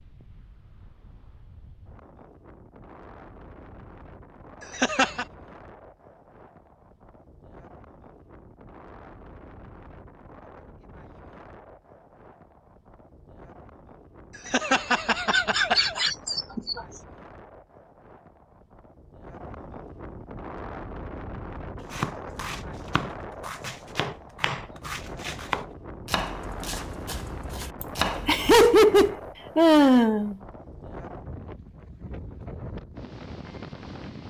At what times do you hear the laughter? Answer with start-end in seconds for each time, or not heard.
4.8-5.2, 14.4-16.9, 27.8-30.4.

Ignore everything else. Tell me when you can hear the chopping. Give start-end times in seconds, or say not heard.
21.8-29.1.